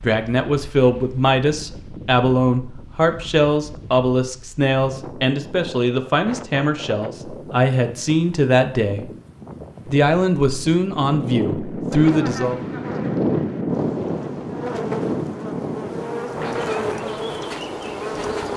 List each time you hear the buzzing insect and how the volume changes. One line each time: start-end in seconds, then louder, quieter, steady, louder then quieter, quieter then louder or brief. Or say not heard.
11.9-18.5 louder.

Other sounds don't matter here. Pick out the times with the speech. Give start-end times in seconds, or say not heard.
0.0-9.1, 9.8-12.6.